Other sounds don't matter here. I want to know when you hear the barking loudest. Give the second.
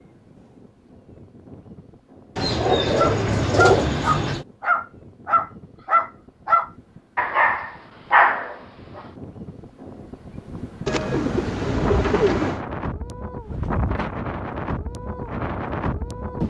8 s.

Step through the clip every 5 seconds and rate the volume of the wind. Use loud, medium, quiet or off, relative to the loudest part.
quiet, quiet, loud, loud.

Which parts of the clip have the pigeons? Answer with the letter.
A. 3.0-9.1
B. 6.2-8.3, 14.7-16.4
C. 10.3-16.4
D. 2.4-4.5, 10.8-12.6
D.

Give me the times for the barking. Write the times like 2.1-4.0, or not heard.
3.0-9.1.